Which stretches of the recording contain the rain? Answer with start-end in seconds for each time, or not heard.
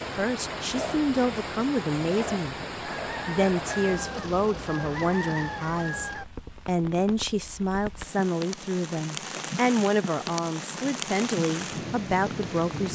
0.0-12.8.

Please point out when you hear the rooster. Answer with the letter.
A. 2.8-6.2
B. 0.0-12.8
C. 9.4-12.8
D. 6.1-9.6
A.